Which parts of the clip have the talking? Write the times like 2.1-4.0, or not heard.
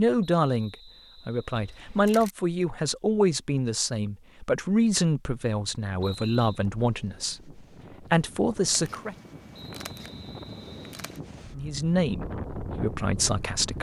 0.0-9.2, 11.5-13.7.